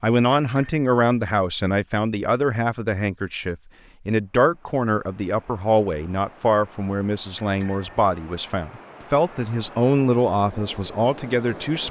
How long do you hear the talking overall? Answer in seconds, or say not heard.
12 s.